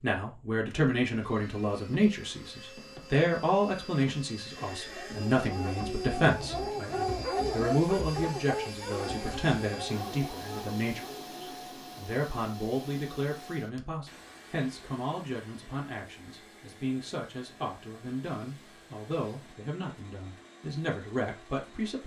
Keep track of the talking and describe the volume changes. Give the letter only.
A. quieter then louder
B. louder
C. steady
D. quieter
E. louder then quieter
D.